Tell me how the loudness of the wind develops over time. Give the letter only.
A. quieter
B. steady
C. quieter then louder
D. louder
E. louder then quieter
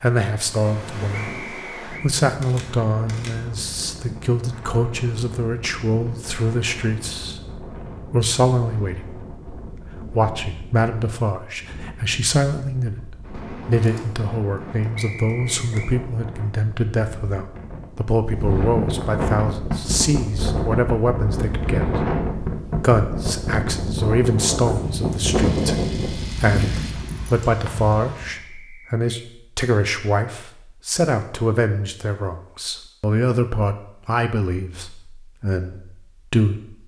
D.